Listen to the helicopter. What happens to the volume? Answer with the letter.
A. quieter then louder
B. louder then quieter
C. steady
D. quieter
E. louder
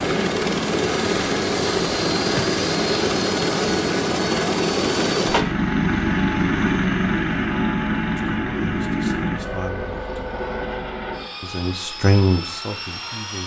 D.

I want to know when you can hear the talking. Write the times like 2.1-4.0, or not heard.
8.2-10.2, 11.4-13.4.